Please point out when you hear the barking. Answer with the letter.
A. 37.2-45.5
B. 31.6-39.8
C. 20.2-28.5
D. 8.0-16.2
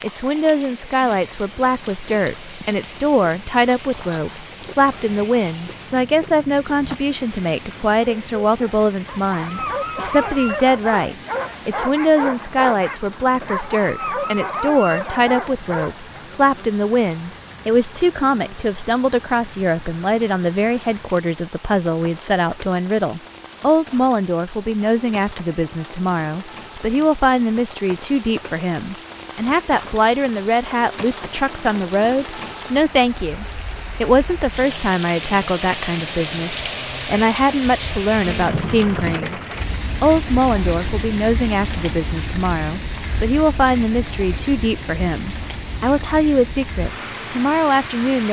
D.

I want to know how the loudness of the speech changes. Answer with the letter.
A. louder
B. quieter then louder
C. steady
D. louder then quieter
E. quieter
C.